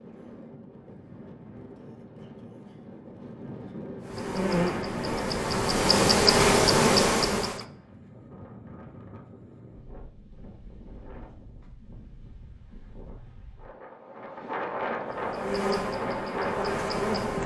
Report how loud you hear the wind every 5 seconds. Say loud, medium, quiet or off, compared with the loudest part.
medium, medium, medium, loud.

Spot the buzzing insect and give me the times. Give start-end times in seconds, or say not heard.
4.0-7.7, 15.1-17.4.